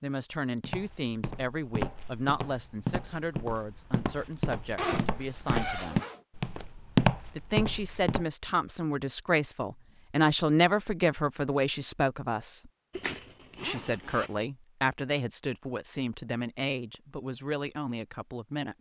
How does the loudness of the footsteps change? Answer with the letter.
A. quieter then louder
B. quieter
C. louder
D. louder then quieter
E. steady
C.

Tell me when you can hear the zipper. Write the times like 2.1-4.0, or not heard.
4.8-6.2, 12.9-14.3.